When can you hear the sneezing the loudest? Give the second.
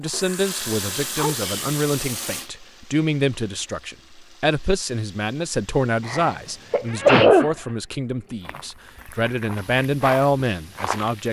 7 s.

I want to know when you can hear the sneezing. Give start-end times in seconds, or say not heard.
1.1-1.7, 6.0-7.5.